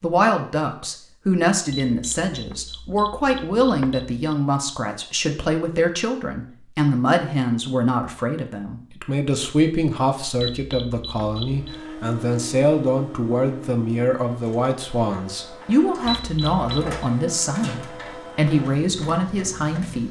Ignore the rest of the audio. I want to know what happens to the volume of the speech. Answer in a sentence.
The volume of the speech stays about the same.